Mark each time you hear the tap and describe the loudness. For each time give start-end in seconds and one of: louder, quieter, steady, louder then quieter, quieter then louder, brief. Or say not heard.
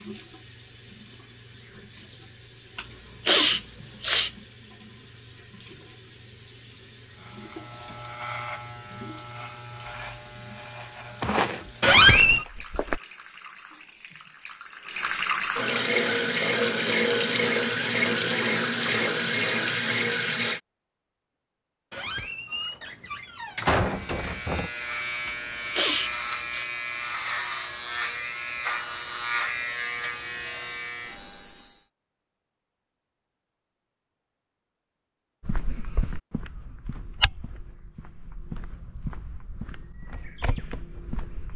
0.0-20.6 louder.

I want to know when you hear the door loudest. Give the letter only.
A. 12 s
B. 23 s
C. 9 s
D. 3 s
A.